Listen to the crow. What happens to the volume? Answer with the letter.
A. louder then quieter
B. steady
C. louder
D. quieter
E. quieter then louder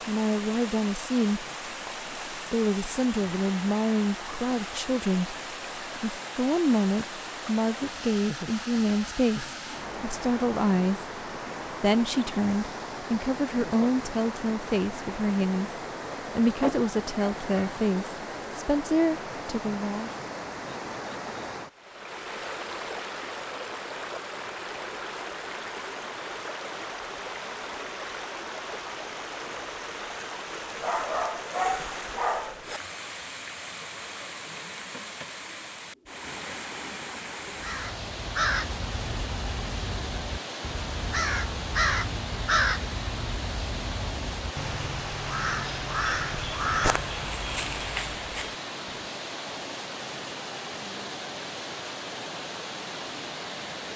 B.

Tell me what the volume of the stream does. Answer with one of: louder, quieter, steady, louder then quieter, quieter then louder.
steady.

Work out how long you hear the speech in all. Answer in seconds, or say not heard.
18 s.